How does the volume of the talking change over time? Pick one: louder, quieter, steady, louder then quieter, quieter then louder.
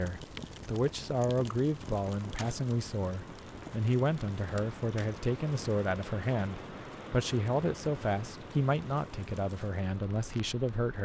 steady.